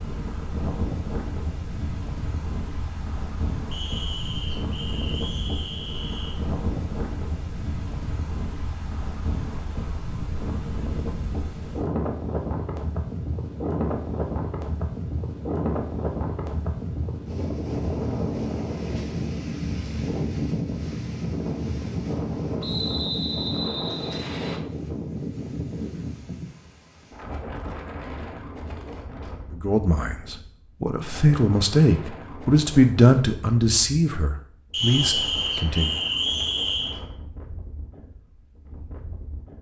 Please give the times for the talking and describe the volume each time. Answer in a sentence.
You can hear the talking from 29.5 to 36.0 s, getting louder then quieter.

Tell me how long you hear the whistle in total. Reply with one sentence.
The whistle can be heard for 7 seconds in total.